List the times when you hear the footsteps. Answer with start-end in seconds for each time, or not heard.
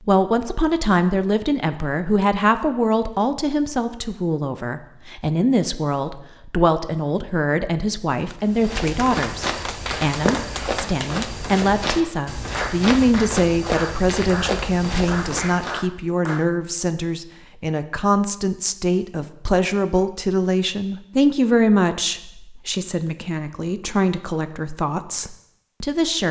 8.4-15.8.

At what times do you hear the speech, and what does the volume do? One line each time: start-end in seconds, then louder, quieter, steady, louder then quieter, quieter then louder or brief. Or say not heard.
0.1-26.2 steady.